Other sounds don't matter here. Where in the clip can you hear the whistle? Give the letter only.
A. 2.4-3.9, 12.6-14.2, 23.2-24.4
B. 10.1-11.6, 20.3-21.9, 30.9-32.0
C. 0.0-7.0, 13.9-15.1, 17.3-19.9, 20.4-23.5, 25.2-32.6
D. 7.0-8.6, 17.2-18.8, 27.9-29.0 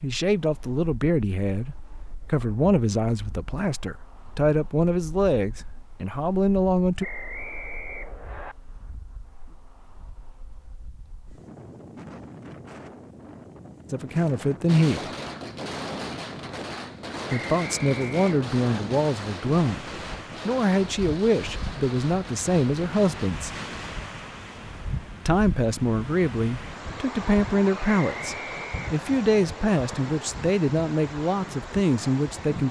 D.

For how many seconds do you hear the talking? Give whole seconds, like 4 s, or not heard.
21 s.